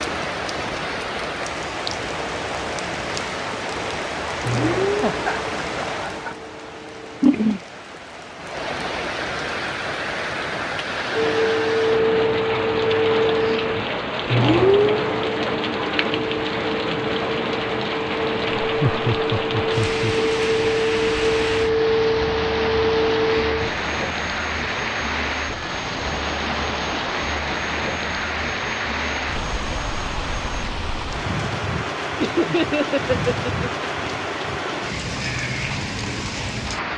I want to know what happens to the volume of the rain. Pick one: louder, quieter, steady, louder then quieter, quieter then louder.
steady.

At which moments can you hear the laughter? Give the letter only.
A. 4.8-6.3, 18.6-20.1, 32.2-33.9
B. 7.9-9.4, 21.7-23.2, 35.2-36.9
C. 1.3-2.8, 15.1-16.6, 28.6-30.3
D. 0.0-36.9
A.